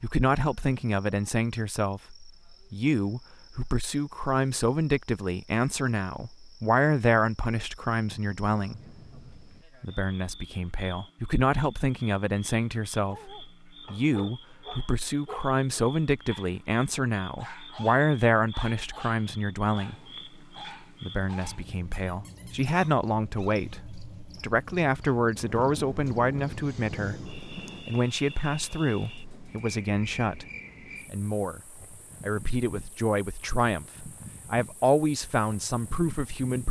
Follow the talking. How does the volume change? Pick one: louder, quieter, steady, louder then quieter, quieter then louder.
steady.